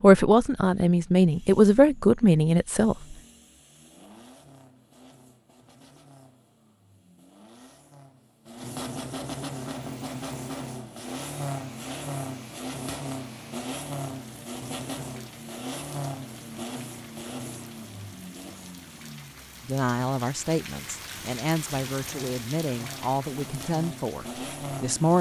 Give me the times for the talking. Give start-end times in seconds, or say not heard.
0.0-3.1, 19.6-25.1.